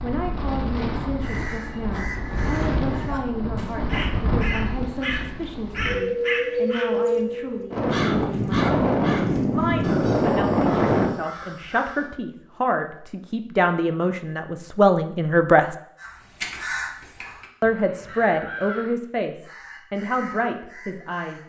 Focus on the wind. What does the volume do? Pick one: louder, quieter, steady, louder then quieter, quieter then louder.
louder.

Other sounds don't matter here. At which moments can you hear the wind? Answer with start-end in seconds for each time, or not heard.
0.0-11.1.